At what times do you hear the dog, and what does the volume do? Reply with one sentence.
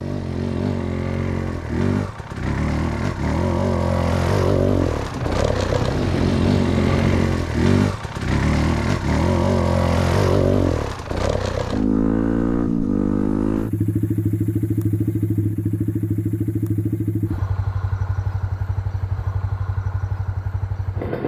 You can't hear the dog here.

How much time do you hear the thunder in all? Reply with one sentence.
The thunder can be heard for 2 seconds in total.